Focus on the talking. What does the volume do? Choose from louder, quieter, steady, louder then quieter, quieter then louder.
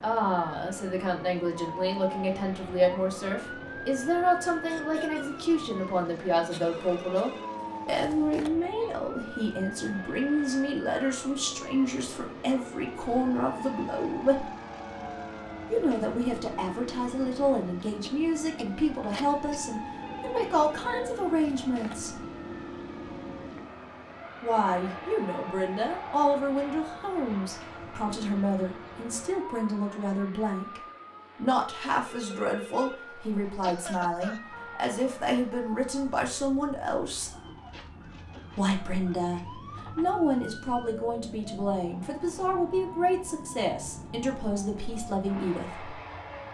steady.